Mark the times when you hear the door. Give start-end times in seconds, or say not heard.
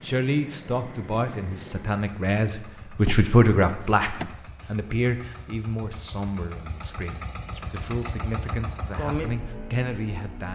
3.0-4.3.